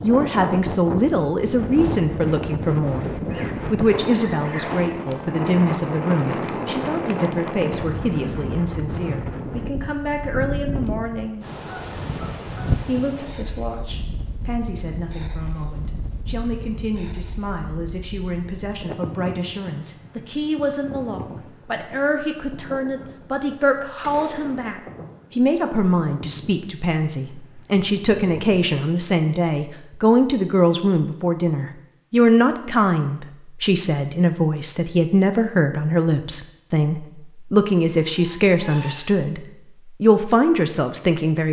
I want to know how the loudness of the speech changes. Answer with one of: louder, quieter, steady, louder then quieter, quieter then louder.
quieter then louder.